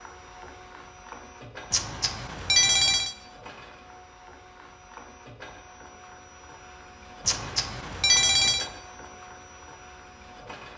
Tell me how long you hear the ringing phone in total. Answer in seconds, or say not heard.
3 s.